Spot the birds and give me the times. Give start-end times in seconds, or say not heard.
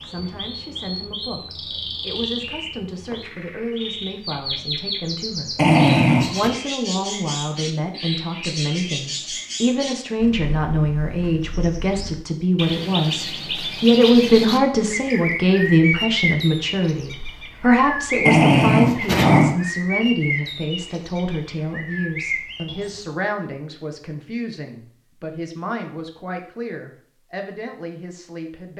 0.0-23.1.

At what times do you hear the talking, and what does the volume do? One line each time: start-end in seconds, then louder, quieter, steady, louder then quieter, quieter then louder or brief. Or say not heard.
0.0-28.7 louder then quieter.